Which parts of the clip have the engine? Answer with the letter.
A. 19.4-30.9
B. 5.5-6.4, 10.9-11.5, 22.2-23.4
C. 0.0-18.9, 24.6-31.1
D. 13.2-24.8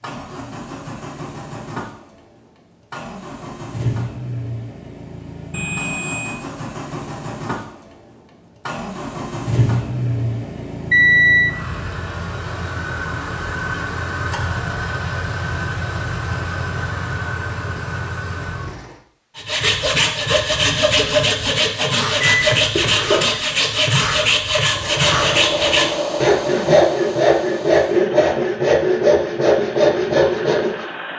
C.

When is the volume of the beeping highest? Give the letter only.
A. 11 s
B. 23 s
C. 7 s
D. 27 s
A.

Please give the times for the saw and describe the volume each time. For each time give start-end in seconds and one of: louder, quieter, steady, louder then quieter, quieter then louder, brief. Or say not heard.
19.4-30.9 steady.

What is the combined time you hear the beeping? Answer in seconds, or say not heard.
3 s.